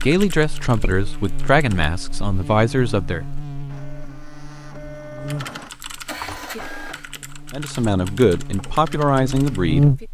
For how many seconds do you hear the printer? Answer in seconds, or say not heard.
3 s.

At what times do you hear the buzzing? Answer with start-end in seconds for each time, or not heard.
0.0-10.0.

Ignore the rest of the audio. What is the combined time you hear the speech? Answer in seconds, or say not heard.
6 s.